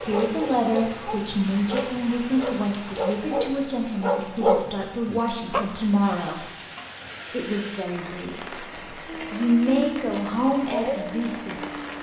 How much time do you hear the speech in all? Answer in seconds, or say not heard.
10 s.